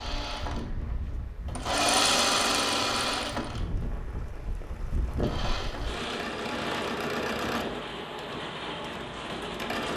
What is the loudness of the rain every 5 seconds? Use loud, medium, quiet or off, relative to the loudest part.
medium, loud.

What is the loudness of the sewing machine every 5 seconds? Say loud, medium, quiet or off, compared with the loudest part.
loud, medium.